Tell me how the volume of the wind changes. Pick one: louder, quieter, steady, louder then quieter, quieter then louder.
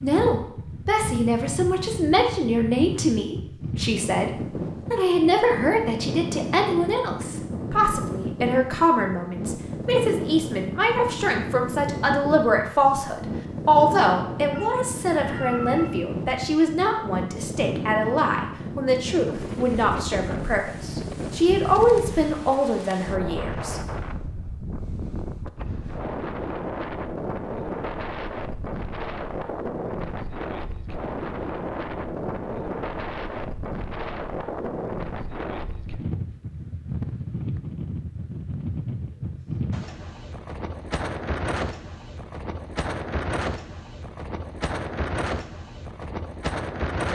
steady.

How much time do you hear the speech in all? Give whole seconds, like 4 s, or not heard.
23 s.